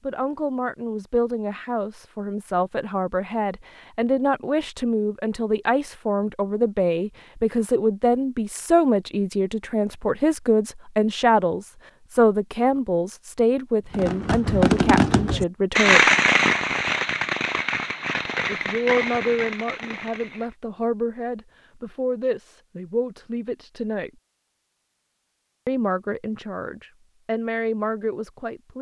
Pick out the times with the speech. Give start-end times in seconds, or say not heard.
0.0-16.1, 18.4-24.1, 25.6-28.7.